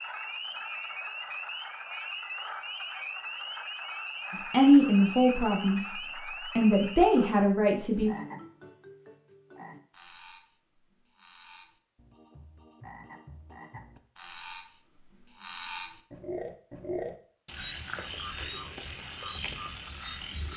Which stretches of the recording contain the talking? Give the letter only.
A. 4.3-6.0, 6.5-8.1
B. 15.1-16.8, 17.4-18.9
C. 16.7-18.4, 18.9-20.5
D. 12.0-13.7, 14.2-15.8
A.